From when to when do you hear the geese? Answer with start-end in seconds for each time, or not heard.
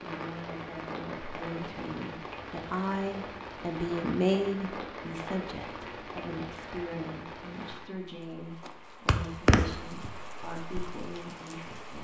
8.7-10.1.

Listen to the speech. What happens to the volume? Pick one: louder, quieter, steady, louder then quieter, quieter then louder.
louder then quieter.